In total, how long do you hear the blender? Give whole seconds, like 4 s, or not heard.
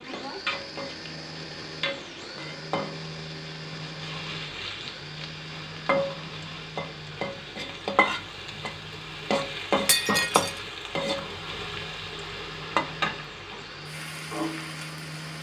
15 s.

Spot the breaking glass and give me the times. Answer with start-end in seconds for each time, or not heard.
9.8-10.6.